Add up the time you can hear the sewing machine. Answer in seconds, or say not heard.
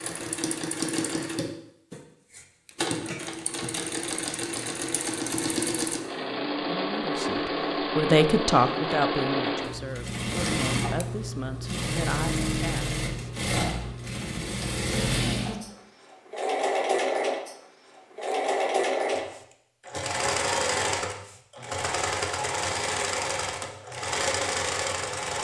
25 s.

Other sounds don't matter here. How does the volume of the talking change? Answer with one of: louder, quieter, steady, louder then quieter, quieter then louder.
louder then quieter.